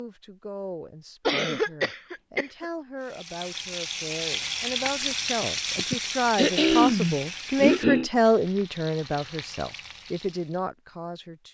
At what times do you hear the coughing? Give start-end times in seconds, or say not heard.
1.2-2.6, 5.8-8.1.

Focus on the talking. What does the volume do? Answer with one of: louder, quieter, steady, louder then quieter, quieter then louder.
louder then quieter.